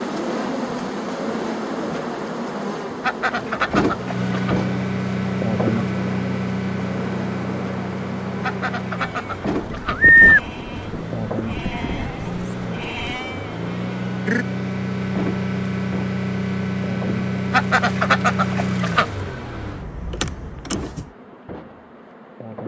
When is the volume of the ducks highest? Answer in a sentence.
The volume of the ducks peaks at 18 seconds.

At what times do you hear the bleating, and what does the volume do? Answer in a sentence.
You can hear the bleating from 8.9 to 14.4 s, getting quieter.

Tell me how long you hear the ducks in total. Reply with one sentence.
The ducks can be heard for 5 seconds in total.